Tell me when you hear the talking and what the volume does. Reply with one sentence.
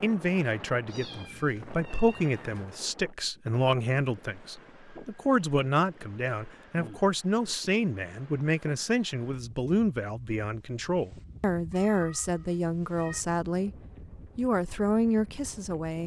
The talking can be heard from 0.0 to 13.7 s, at a steady volume; and briefly from 14.3 to 16.0 s.